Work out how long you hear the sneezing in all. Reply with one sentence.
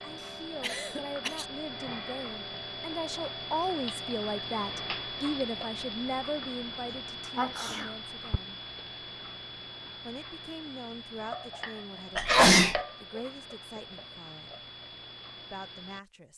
The sneezing can be heard for 3 seconds in total.